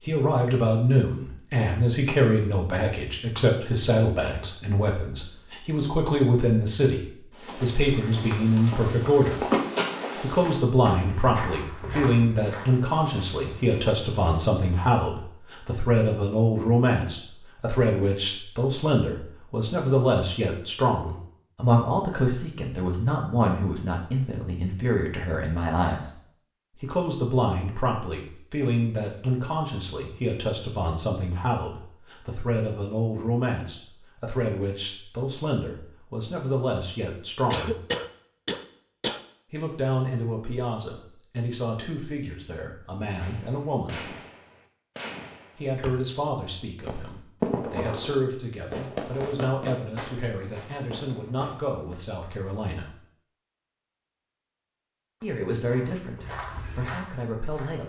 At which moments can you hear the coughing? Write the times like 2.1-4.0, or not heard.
37.5-39.2.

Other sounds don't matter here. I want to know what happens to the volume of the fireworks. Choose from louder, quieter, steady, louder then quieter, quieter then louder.
louder then quieter.